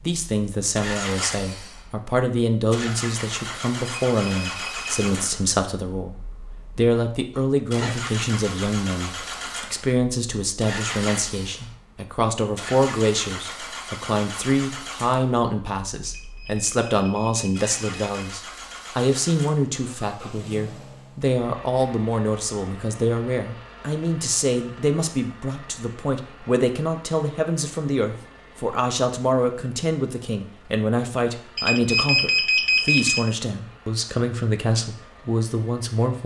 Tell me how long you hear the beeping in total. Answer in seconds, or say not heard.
5 s.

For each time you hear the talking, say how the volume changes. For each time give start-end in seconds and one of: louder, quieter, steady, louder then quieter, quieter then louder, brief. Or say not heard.
0.0-36.2 steady.